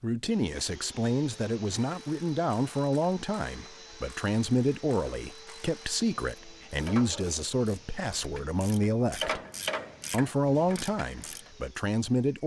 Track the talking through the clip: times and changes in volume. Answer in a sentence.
You can hear the talking from 0.0 to 9.4 s, at a steady volume; and briefly from 10.1 to 12.4 s.